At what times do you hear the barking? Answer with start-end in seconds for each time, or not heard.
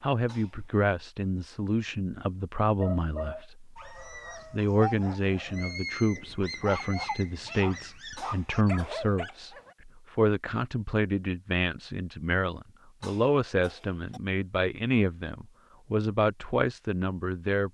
2.8-9.8.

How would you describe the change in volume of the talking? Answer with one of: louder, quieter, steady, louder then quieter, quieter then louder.
steady.